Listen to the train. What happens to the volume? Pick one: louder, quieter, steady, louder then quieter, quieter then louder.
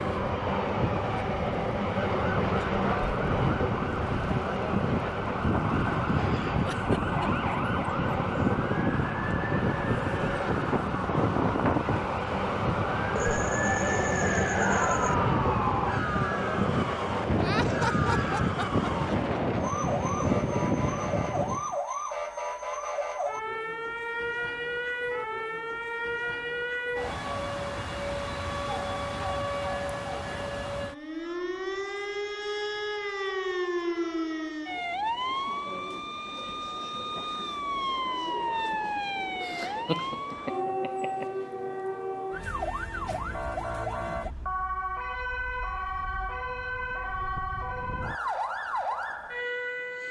steady.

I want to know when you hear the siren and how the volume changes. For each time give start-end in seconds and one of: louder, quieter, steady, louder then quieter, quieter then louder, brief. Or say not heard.
0.0-50.0 steady.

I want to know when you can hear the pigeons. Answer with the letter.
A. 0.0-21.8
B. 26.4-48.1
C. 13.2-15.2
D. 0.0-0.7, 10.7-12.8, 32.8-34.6
C.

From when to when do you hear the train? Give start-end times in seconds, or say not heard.
0.0-21.8.